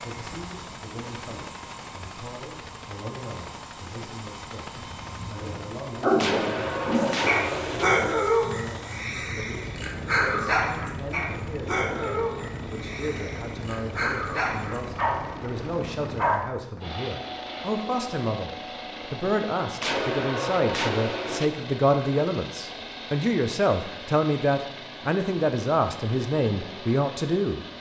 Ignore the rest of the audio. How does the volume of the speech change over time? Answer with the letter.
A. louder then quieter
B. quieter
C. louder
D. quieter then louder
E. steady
C.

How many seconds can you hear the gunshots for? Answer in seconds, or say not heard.
3 s.